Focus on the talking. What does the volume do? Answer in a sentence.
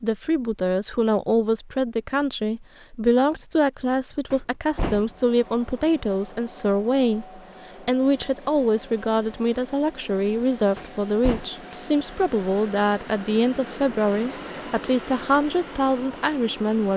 The loudness of the talking stays about the same.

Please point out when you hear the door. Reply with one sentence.
You can hear the door from 4.3 to 5.2 s and from 10.8 to 11.4 s.